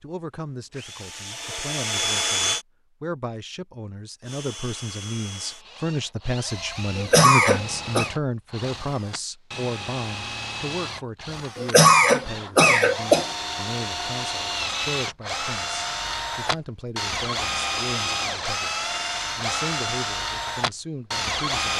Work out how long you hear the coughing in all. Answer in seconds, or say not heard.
3 s.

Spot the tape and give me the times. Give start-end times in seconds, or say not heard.
not heard.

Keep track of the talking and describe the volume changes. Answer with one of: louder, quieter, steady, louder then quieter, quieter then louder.
louder then quieter.